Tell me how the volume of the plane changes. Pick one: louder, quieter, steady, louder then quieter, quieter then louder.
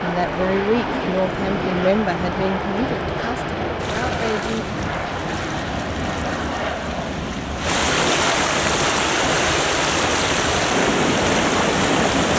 steady.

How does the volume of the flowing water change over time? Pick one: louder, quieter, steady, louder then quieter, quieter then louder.
louder.